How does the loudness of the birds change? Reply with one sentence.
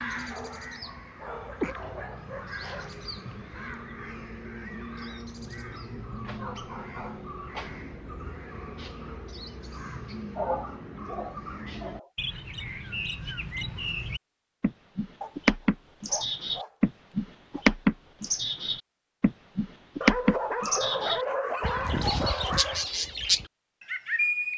The volume of the birds goes up.